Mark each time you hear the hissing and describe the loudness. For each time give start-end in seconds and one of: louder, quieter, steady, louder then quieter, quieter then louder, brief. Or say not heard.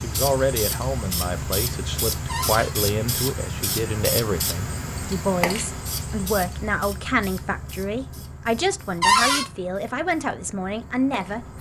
0.0-11.5 quieter.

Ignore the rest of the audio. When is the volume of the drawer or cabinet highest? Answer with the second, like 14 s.
9 s.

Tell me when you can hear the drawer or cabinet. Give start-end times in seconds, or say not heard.
2.2-2.8, 9.0-9.4.